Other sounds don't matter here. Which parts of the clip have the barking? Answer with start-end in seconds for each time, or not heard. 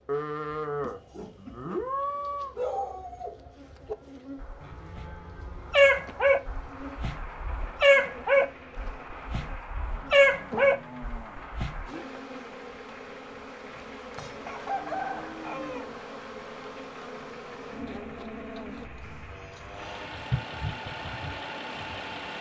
0.8-1.9, 2.5-11.9.